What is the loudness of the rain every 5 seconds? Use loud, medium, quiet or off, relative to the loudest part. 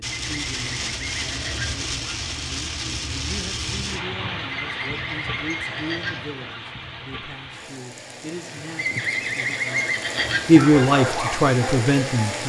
loud, medium, loud.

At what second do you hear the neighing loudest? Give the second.
10 s.